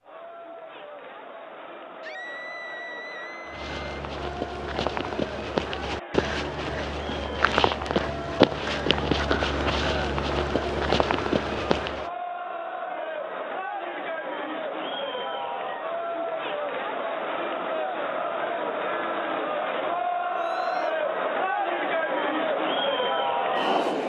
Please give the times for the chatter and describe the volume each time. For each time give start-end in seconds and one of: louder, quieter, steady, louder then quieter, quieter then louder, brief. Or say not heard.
0.0-24.0 louder.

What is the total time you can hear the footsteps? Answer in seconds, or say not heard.
9 s.